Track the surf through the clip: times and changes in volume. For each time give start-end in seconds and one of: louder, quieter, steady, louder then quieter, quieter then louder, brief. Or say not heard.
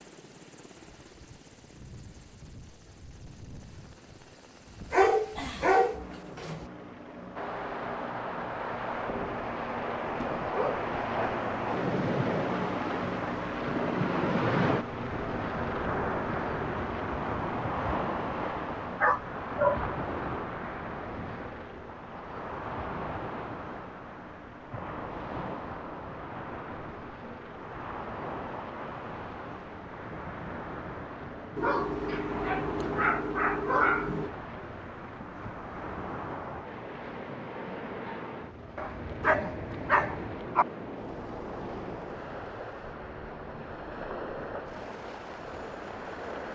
7.3-46.5 quieter.